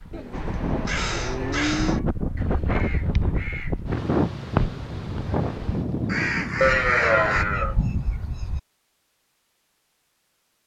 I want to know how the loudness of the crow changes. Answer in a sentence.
The loudness of the crow goes down, then up.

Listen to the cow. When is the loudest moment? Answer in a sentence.
The loudest moment of the cow is at 7 seconds.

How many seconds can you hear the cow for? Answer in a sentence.
The cow can be heard for 4 seconds in total.